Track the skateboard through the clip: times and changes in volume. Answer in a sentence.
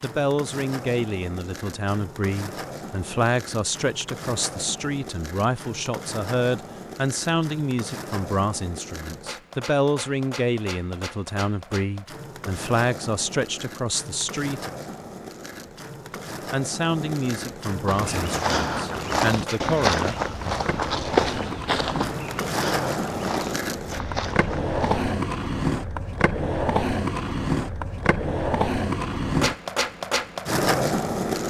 You can hear the skateboard from 0.0 to 31.4 s, getting louder.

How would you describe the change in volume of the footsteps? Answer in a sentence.
The volume of the footsteps goes down.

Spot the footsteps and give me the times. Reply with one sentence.
The footsteps can be heard from 17.9 to 25.1 s.